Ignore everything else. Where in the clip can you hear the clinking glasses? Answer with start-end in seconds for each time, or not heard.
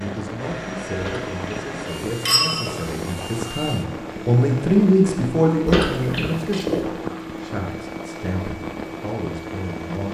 1.0-3.0, 5.7-6.8.